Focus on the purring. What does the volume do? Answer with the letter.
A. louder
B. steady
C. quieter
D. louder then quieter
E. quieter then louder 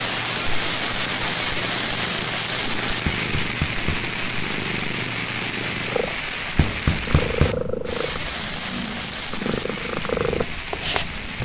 A.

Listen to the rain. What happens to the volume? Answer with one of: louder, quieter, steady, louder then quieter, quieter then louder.
quieter.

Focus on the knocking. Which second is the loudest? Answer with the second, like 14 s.
7 s.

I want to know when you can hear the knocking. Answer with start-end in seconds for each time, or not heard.
3.0-4.1, 6.5-7.7.